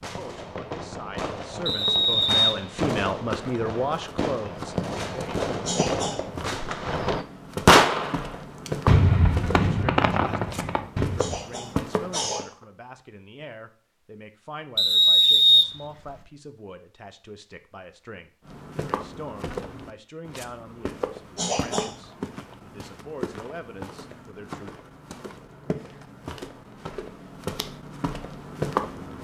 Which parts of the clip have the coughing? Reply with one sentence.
The coughing can be heard from 5.7 to 6.2 s, from 11.2 to 12.5 s and from 21.4 to 21.9 s.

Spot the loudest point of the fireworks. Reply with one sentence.
The volume of the fireworks peaks at 8 seconds.